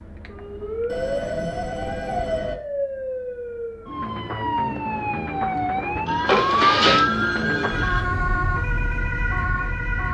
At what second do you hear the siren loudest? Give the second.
7 s.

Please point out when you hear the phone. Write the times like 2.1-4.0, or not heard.
0.8-2.6, 6.0-8.1.